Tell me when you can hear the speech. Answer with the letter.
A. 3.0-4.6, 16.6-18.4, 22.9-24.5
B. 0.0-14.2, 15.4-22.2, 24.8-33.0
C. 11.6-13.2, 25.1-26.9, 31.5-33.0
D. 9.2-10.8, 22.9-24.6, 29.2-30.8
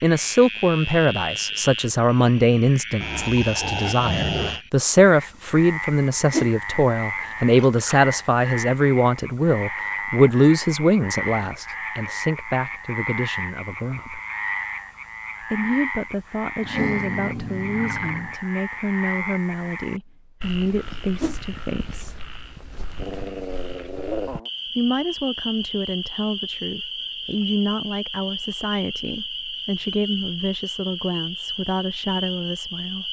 B.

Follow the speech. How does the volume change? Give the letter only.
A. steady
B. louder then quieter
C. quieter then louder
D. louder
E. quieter
E.